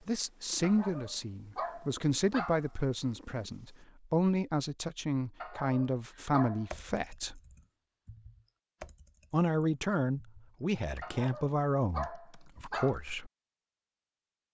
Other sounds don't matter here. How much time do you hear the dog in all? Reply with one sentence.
The dog can be heard for 6 seconds in total.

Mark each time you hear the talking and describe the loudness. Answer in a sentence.
The talking can be heard from 0.1 to 7.4 s, at a steady volume; and from 9.3 to 13.3 s, at a steady volume.